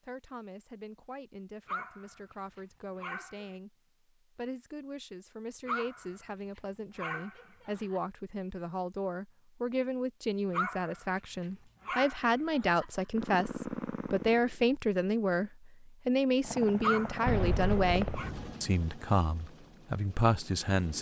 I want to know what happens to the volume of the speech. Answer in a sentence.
The loudness of the speech goes up.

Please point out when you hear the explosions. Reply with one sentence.
You can hear the explosions from 17.2 to 18.6 s.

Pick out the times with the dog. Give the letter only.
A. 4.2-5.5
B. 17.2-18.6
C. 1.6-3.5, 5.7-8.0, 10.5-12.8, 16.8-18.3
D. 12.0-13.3
C.